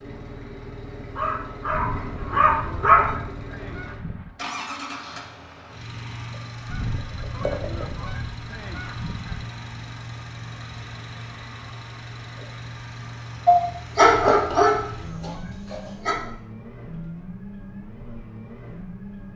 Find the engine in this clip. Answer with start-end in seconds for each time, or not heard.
0.0-19.3.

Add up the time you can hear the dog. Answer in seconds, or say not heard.
5 s.